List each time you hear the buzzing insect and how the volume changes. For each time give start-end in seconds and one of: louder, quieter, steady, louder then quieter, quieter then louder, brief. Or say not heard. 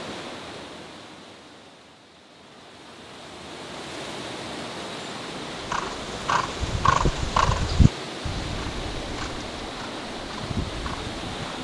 not heard.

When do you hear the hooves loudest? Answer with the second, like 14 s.
7 s.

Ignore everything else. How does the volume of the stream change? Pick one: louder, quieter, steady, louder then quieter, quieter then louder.
louder.